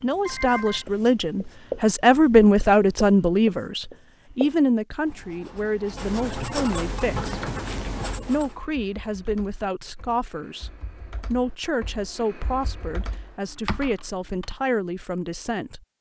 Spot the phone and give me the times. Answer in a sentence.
The phone can be heard from 0.2 to 0.8 s.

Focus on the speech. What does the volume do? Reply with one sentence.
The volume of the speech goes down.